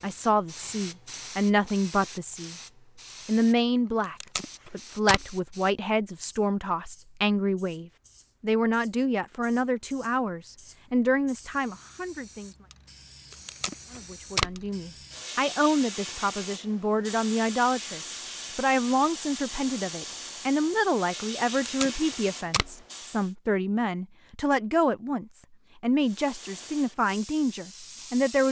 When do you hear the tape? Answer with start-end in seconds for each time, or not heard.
4.2-5.3, 13.3-14.6, 21.6-22.8.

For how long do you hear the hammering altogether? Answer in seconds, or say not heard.
not heard.